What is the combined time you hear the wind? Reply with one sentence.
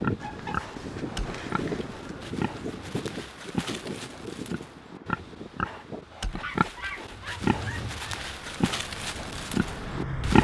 You can hear the wind for 6 seconds altogether.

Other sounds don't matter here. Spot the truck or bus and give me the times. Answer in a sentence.
You can hear the truck or bus from 7.4 to 10.3 s.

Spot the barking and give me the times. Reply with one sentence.
You can't hear the barking here.